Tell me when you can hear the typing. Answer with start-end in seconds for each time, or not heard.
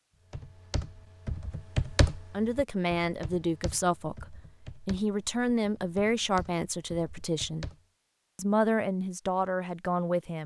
0.3-7.8.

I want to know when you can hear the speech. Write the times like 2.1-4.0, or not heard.
2.3-7.7, 8.3-10.4.